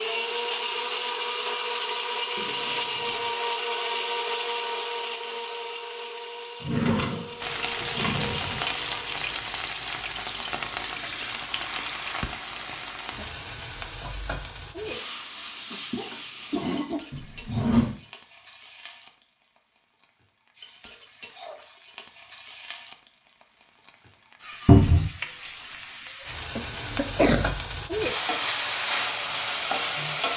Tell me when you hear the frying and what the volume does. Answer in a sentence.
The frying can be heard from 7.4 to 30.3 s, getting quieter then louder.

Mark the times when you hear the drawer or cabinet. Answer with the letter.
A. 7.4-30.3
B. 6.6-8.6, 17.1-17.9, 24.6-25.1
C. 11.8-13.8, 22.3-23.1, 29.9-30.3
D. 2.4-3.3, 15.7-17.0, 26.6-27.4
B.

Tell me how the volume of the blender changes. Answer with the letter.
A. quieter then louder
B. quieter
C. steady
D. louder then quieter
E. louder
B.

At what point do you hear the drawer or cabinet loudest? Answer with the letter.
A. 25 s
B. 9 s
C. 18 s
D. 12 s
A.